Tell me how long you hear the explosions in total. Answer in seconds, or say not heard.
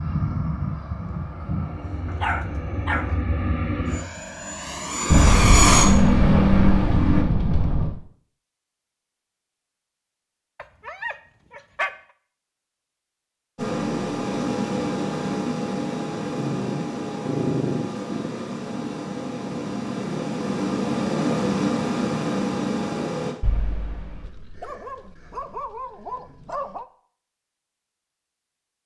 4 s.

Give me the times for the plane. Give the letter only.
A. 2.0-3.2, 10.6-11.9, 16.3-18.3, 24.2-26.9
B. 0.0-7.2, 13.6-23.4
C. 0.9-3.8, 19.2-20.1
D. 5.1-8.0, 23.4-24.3
B.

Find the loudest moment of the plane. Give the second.
6 s.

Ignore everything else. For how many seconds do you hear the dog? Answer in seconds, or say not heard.
7 s.